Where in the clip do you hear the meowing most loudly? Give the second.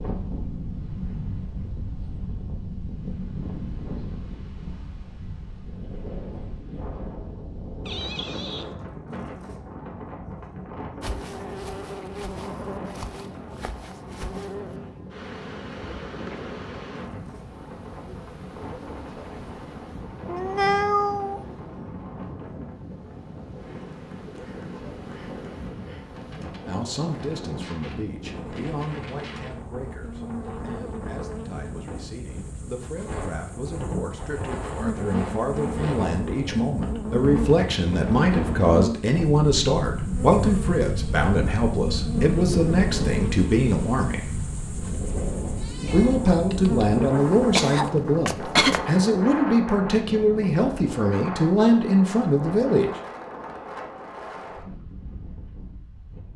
21 s.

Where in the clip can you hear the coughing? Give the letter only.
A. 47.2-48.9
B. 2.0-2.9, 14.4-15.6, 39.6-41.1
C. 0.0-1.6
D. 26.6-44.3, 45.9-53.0
A.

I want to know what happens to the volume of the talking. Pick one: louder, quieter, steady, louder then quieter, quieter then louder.
louder.